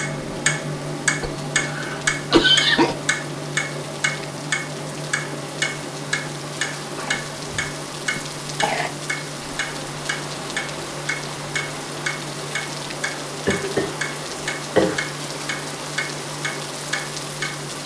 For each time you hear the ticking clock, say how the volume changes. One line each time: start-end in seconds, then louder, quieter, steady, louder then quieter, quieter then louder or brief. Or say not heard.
0.0-17.8 quieter.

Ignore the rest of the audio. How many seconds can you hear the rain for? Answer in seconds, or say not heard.
18 s.